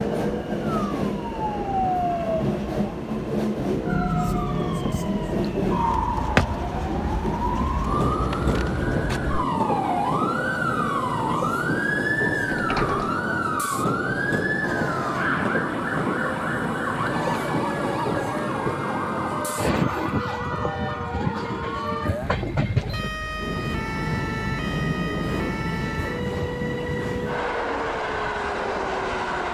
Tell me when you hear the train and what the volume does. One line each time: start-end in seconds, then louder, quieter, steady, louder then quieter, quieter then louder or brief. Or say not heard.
0.0-29.4 steady.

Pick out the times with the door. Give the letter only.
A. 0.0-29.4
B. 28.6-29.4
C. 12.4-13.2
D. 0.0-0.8
C.